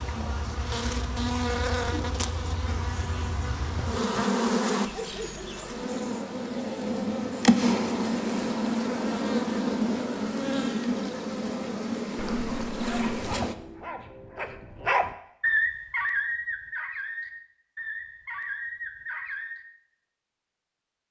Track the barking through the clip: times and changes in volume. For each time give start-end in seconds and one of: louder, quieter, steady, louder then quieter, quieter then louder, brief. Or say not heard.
13.1-19.6 louder then quieter.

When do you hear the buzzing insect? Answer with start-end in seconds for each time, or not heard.
0.0-13.6.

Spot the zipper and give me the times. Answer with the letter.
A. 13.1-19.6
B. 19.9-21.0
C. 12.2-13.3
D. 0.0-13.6
C.